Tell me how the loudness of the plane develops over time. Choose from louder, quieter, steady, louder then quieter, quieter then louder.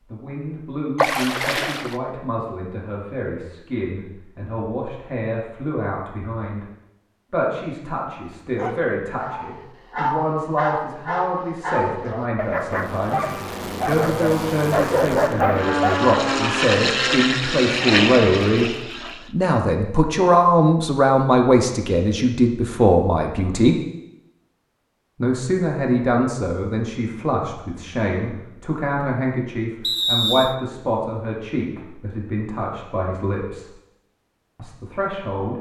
louder.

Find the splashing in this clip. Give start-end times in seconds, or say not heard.
0.9-2.0.